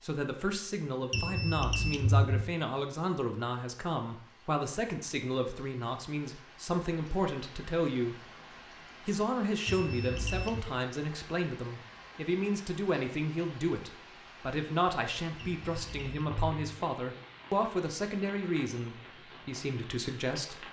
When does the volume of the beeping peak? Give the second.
2 s.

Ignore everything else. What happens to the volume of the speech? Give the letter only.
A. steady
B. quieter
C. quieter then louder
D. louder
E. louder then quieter
A.